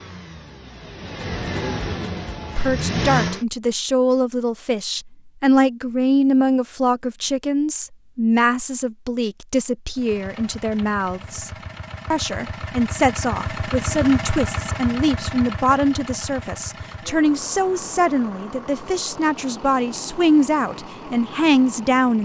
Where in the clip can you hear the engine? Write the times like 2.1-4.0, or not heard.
0.0-3.5, 9.9-22.1.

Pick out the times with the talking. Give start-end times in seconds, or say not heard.
2.5-11.5, 12.1-22.1.